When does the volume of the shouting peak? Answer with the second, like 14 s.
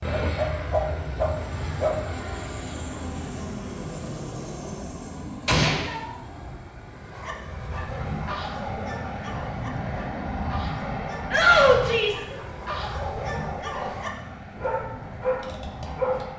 12 s.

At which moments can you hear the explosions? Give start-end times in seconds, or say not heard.
5.5-5.9.